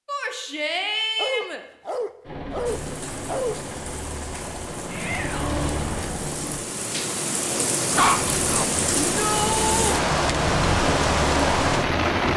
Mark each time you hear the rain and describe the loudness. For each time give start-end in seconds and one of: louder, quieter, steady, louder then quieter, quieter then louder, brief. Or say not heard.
2.6-12.3 louder.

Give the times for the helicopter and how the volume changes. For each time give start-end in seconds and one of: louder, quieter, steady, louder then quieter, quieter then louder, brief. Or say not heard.
2.2-6.6 louder
8.2-12.3 louder.